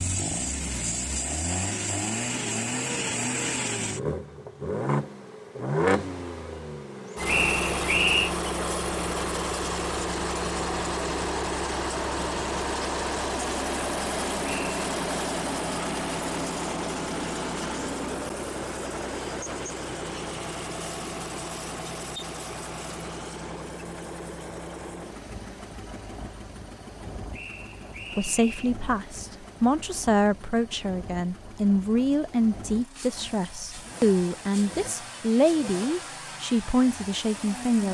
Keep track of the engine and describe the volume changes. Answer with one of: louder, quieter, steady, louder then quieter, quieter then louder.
quieter.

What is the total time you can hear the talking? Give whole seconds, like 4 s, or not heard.
10 s.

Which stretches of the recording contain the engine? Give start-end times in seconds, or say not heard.
0.0-37.8.